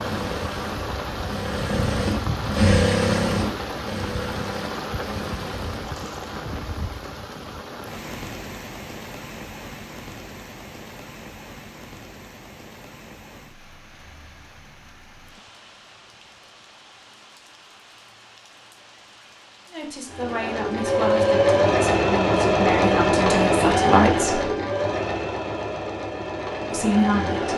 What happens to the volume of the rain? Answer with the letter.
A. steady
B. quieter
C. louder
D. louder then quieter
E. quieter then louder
B.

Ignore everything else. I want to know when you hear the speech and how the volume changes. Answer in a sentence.
You can hear the speech from 19.7 to 24.4 s, getting louder; and briefly from 26.7 to 27.5 s.